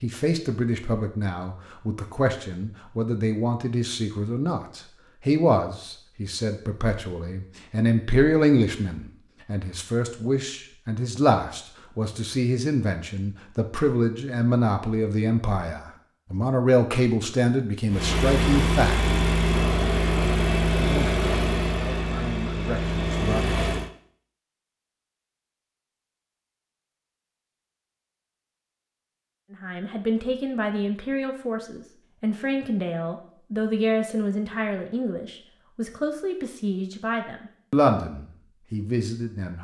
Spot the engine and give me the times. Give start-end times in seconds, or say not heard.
17.9-23.9.